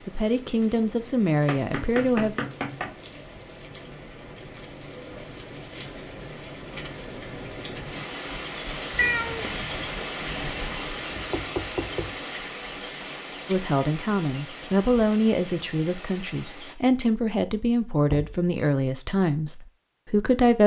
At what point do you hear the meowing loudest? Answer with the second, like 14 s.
9 s.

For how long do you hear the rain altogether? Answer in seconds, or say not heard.
17 s.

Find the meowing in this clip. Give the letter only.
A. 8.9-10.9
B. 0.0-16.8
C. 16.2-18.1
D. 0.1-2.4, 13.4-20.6
A.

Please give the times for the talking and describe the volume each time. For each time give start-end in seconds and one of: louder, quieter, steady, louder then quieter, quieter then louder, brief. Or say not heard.
0.1-2.4 brief
13.4-20.6 steady.